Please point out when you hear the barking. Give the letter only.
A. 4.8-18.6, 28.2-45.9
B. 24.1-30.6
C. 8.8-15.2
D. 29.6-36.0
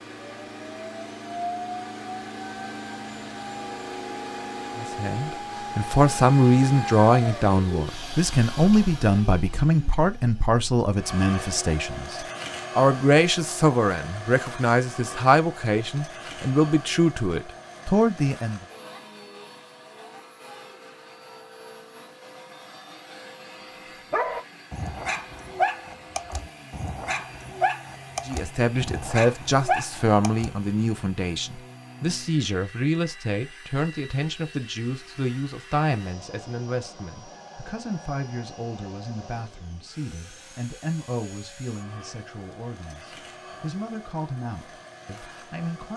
B.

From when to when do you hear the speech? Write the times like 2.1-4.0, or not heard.
4.8-18.6, 28.2-45.9.